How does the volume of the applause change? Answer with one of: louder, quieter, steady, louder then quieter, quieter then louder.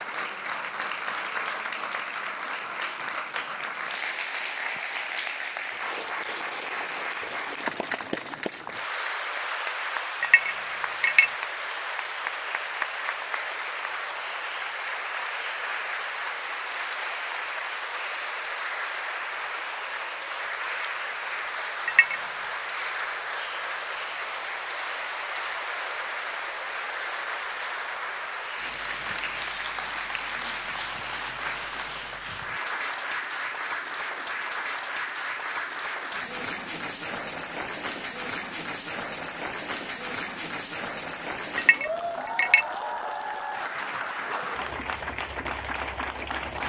steady.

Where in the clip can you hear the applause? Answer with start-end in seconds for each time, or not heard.
0.0-46.6.